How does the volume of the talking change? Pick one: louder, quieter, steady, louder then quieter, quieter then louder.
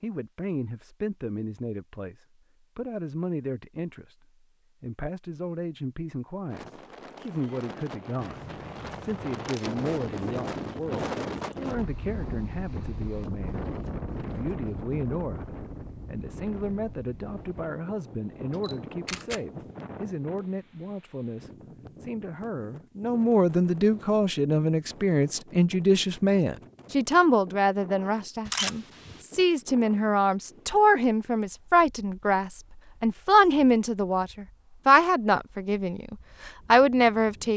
louder.